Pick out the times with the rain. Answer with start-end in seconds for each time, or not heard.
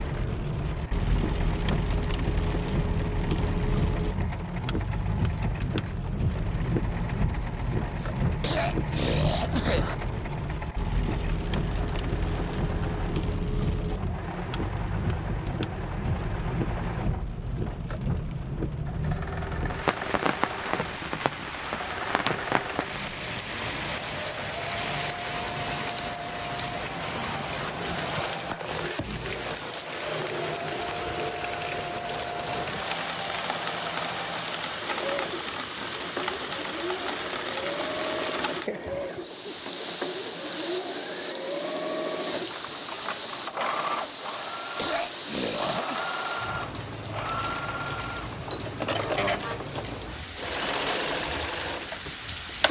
0.0-52.6.